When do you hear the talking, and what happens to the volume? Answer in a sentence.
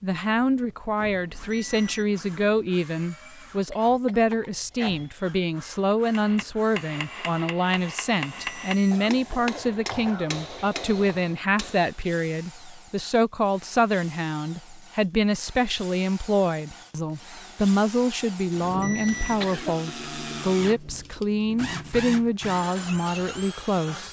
The talking can be heard from 0.0 to 24.0 s, at a steady volume.